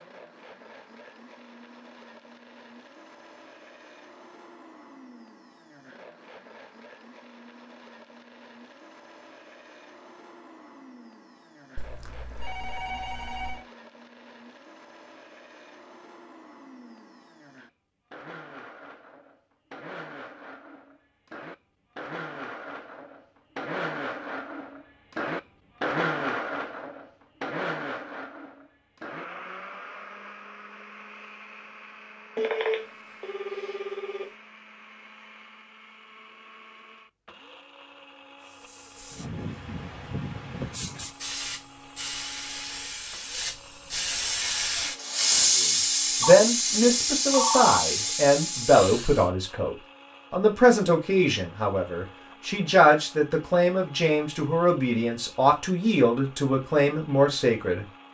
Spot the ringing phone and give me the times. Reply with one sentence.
You can hear the ringing phone from 11.8 to 13.7 s, from 32.4 to 34.3 s and from 46.2 to 47.8 s.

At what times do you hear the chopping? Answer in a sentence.
The chopping can't be heard in this clip.